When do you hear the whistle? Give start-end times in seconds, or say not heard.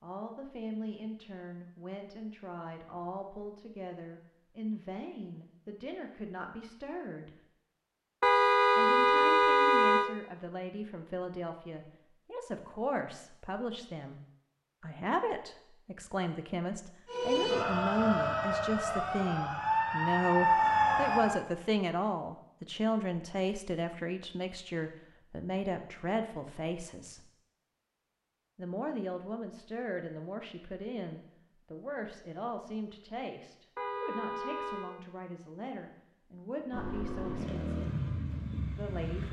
not heard.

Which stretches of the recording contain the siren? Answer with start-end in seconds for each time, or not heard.
17.1-21.4.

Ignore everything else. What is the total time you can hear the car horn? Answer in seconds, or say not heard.
3 s.